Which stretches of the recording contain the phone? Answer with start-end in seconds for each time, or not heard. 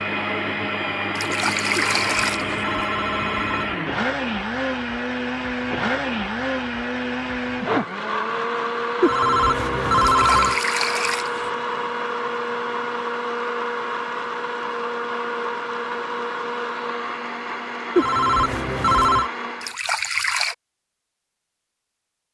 1.8-3.8, 9.0-10.6, 17.9-19.3.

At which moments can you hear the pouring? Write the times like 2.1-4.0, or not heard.
1.1-2.6, 10.0-11.5, 19.6-20.6.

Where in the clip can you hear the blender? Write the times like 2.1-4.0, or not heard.
0.0-19.8.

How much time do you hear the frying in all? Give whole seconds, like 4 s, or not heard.
not heard.